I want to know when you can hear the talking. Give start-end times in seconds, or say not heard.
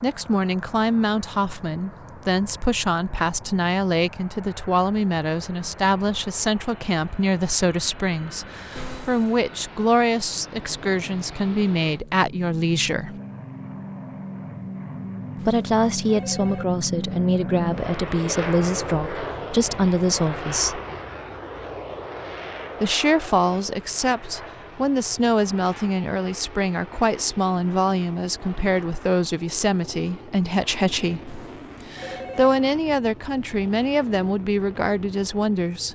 0.0-13.2, 15.4-20.8, 22.8-35.9.